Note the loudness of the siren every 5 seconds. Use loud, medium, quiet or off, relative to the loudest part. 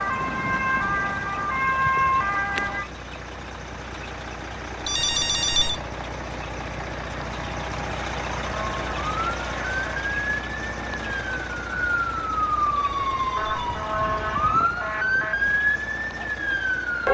loud, medium, loud, loud.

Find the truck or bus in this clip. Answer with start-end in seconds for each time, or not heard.
0.0-17.0.